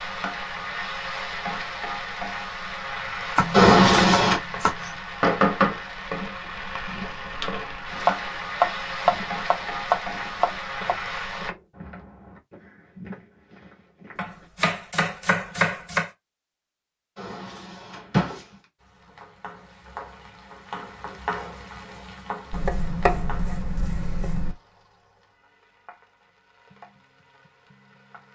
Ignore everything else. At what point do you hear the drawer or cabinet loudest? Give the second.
4 s.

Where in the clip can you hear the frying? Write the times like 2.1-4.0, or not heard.
0.0-11.6, 18.8-28.2.